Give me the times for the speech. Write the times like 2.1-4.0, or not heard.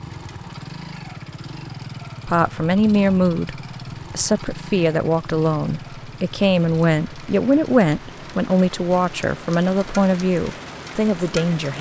2.2-11.7.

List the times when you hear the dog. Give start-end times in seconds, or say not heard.
not heard.